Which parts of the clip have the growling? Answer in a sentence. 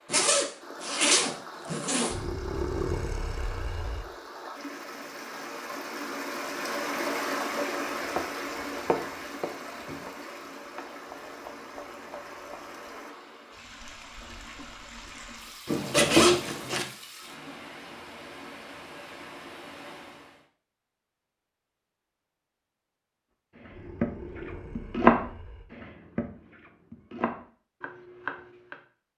The growling can be heard from 2.1 to 4.0 s and from 23.7 to 25.6 s.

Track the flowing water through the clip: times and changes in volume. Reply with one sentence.
You can hear the flowing water from 0.0 to 20.4 s, getting louder then quieter.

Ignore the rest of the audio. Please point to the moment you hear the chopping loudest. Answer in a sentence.
The loudest moment of the chopping is at 25 seconds.